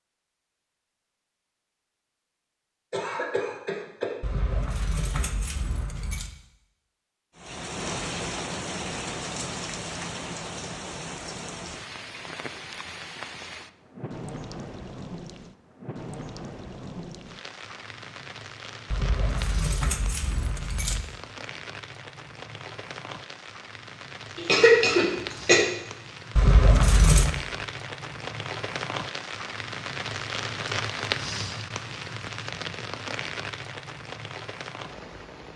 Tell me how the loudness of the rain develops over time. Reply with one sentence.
The volume of the rain goes down, then up.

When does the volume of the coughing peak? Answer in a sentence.
The loudest moment of the coughing is at 25 seconds.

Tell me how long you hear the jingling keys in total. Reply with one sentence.
The jingling keys can be heard for 5 seconds in total.